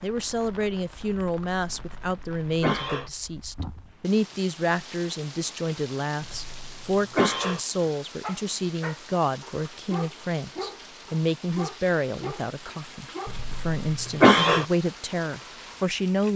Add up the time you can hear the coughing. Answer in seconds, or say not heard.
4 s.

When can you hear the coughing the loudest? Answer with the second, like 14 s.
14 s.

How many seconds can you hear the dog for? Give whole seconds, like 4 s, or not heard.
5 s.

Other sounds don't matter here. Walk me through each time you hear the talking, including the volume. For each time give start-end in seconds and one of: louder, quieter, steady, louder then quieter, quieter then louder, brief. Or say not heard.
0.0-16.3 steady.